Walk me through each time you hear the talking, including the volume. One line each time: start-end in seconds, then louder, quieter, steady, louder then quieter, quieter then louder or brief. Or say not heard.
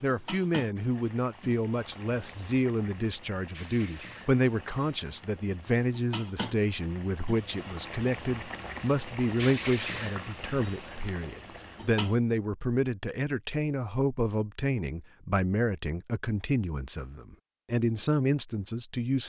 0.0-19.2 steady.